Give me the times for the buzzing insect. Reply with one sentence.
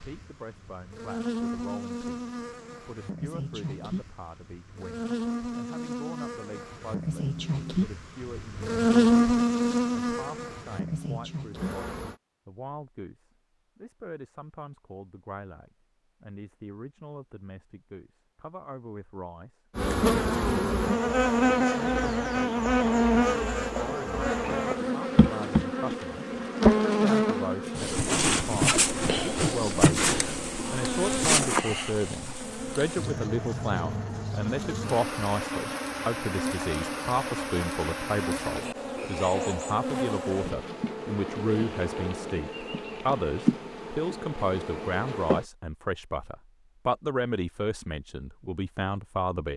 You can hear the buzzing insect from 0.0 to 12.2 s and from 19.8 to 45.5 s.